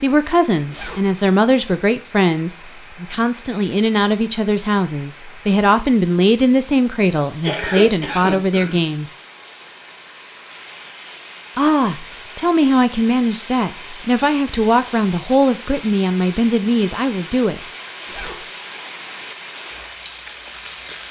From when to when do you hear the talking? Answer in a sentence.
The talking can be heard from 0.0 to 9.2 s and from 11.6 to 17.6 s.